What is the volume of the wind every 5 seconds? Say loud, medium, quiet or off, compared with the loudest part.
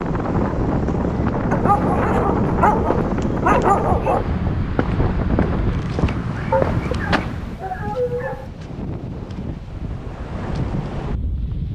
loud, medium, medium.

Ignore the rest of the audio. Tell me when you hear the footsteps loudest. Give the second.
7 s.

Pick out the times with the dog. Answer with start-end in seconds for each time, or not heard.
1.5-4.2, 6.5-8.4.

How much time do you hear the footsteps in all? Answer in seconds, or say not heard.
7 s.